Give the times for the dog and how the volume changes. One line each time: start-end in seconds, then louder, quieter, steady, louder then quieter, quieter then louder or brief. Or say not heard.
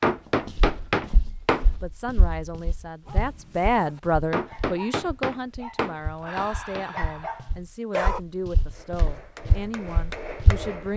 3.0-8.2 louder.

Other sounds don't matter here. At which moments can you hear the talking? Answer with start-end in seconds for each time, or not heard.
1.7-10.9.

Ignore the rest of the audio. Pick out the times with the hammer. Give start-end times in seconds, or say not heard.
0.0-1.6, 4.3-7.0, 8.7-10.9.